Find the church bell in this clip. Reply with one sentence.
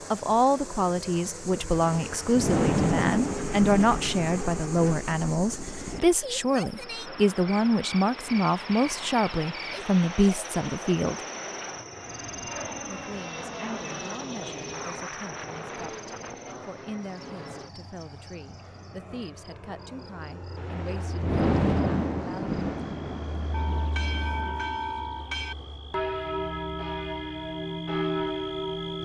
The church bell can be heard from 23.5 to 29.0 s.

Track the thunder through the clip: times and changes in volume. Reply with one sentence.
The thunder can be heard from 1.7 to 6.0 s, getting quieter; and from 20.6 to 24.6 s, getting quieter.